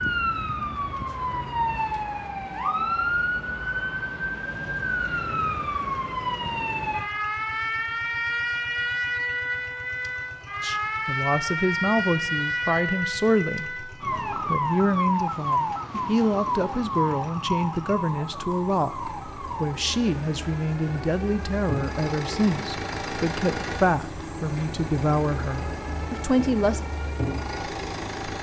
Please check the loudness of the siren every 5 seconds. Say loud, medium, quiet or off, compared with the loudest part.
loud, loud, loud, loud, quiet, quiet.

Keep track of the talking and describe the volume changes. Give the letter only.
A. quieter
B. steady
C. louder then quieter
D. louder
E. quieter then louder
B.